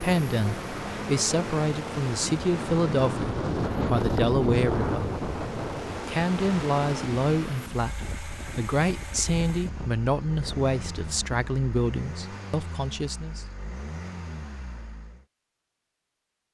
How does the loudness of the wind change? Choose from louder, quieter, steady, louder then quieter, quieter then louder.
louder then quieter.